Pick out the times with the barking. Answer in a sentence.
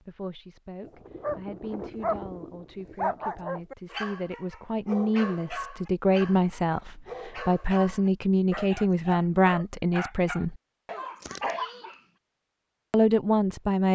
The barking can be heard from 0.8 to 12.0 s.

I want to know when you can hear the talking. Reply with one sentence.
The talking can be heard from 0.0 to 10.6 s and from 12.9 to 13.9 s.